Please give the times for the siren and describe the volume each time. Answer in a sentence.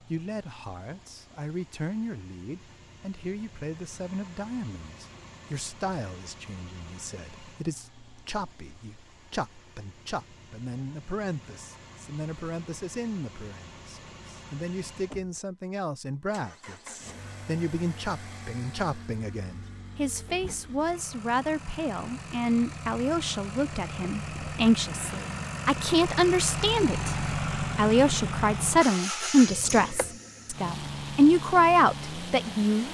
You can't hear the siren here.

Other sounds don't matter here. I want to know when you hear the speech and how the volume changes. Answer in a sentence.
You can hear the speech from 0.0 to 32.8 s, getting louder.